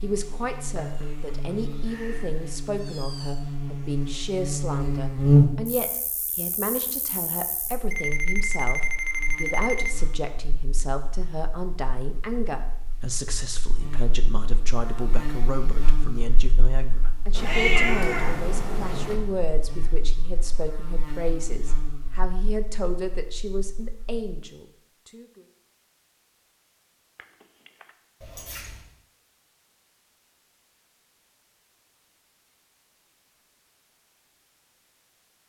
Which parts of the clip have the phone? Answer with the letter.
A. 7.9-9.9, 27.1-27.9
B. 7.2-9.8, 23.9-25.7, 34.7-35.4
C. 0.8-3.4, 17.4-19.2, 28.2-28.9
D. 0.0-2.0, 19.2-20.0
A.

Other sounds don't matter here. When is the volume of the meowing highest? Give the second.
18 s.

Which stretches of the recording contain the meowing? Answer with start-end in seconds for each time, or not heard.
0.8-3.4, 17.4-19.2, 28.2-28.9.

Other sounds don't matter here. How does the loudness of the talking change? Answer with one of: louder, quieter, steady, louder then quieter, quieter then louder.
steady.